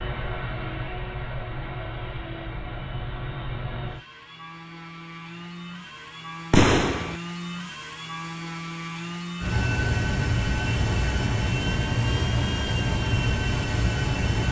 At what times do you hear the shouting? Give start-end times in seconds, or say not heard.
not heard.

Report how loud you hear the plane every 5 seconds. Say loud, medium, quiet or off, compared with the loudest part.
medium, medium, loud.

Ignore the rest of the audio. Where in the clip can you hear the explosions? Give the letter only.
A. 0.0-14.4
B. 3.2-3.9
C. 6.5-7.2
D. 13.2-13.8
C.